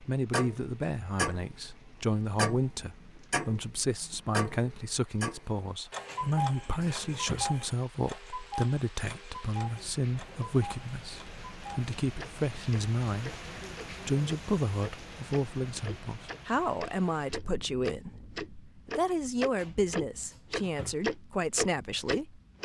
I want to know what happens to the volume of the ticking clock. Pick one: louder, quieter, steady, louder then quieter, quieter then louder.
quieter then louder.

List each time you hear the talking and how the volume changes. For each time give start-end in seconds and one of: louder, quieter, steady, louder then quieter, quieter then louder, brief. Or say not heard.
0.1-22.6 steady.